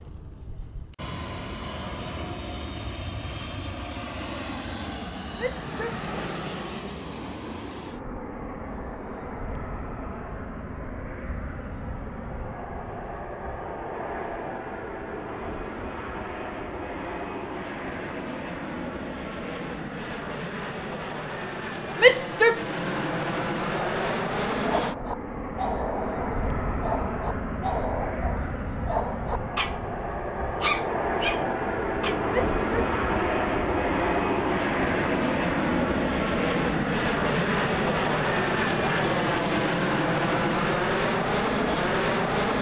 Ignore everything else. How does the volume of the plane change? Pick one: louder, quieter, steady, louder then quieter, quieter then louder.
louder.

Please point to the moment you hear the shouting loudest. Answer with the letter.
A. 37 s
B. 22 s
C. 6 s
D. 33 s
B.